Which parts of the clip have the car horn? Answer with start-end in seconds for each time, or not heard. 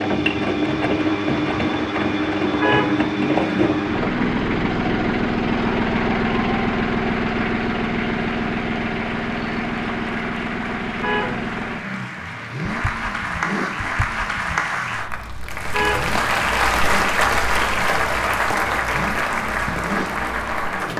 2.6-3.8, 11.0-12.2, 15.7-16.4.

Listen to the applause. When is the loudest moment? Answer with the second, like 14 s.
17 s.